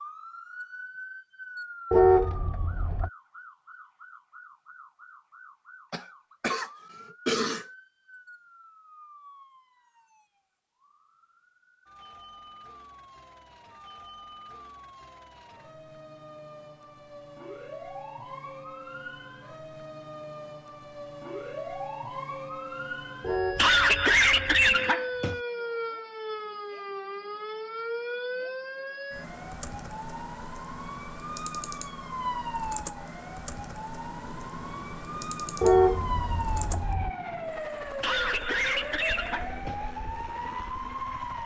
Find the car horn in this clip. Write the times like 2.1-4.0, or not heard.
1.9-3.1, 23.2-24.6, 35.6-37.1.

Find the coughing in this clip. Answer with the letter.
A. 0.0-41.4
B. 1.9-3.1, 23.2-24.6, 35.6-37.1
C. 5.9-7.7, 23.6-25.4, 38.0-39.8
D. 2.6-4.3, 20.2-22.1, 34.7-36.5
C.